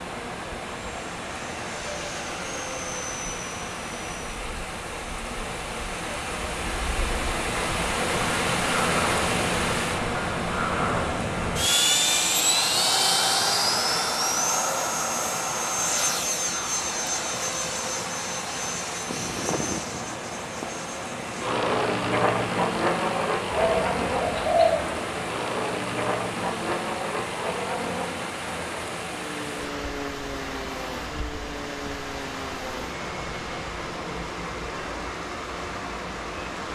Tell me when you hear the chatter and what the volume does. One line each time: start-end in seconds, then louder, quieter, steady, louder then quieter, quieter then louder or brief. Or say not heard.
not heard.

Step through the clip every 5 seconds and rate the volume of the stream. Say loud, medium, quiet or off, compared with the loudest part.
medium, loud, medium, medium, medium, medium, medium, medium.